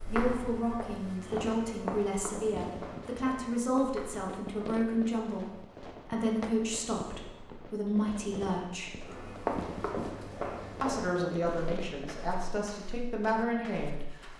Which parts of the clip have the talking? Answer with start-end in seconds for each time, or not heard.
0.0-9.1, 10.8-14.3.